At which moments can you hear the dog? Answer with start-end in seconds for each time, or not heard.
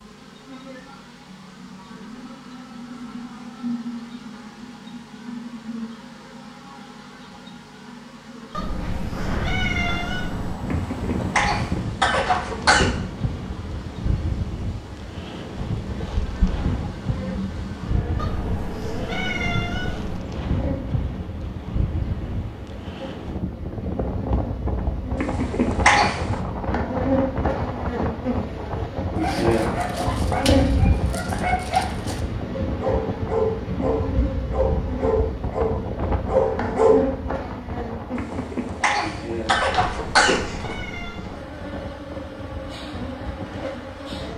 29.1-37.0.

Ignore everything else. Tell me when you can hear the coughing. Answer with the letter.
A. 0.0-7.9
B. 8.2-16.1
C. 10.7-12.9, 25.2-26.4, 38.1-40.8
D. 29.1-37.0
C.